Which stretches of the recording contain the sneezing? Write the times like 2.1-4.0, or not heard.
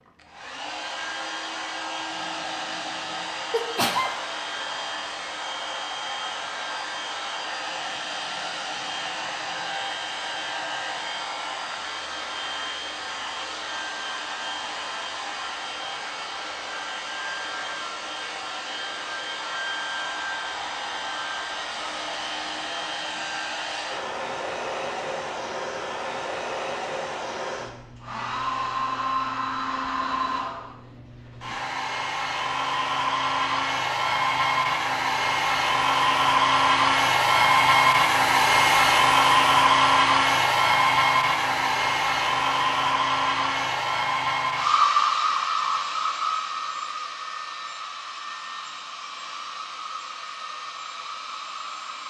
3.5-4.2.